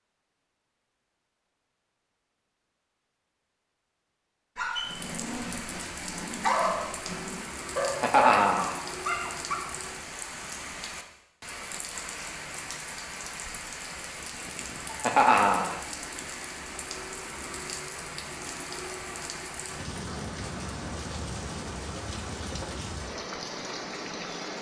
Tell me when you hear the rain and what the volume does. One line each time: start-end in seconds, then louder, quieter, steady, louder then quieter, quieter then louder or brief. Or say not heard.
4.8-24.5 steady.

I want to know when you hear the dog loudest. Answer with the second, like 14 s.
7 s.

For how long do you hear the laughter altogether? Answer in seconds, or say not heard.
2 s.